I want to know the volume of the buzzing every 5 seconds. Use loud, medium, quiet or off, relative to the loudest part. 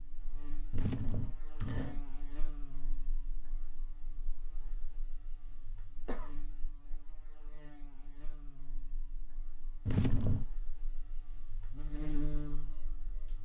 medium, quiet, loud.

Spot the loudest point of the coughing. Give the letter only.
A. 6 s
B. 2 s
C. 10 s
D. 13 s
C.